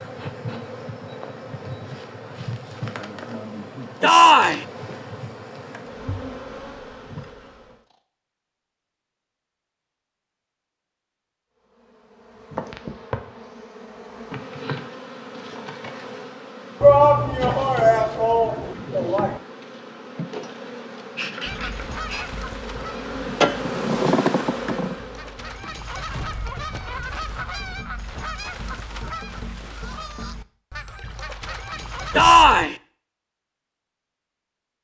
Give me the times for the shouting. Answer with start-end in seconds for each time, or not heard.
4.0-4.7, 16.8-19.4, 32.1-32.8.